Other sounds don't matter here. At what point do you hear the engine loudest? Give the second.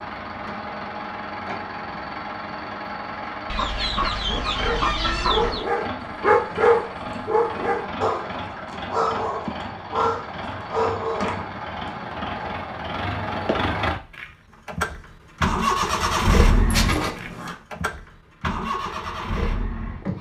16 s.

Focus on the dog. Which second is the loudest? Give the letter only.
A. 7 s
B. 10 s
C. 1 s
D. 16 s
A.